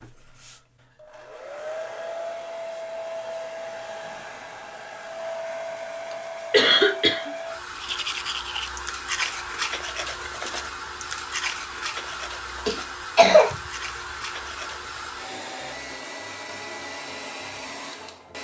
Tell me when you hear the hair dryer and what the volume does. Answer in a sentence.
The hair dryer can be heard from 0.0 to 18.3 s, at a steady volume.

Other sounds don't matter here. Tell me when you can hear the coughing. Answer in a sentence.
You can hear the coughing from 6.5 to 7.3 s and from 12.7 to 13.6 s.